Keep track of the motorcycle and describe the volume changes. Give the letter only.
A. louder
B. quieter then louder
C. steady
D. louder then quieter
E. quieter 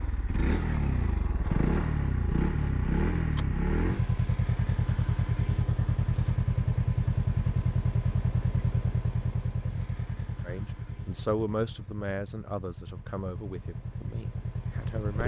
E.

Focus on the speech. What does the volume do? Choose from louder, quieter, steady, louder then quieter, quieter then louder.
quieter.